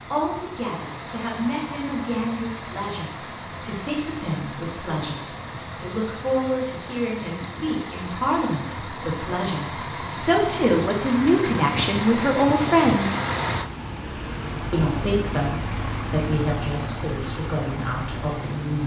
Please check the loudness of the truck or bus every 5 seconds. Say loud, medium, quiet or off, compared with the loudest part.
medium, medium, loud, loud.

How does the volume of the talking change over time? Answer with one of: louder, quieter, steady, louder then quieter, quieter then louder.
louder then quieter.